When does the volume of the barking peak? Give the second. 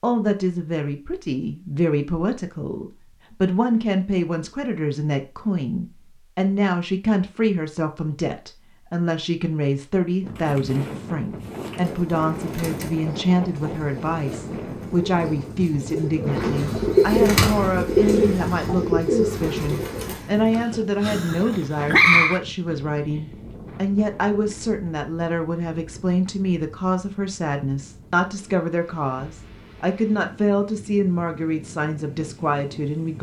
22 s.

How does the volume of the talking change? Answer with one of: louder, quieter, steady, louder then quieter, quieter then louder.
steady.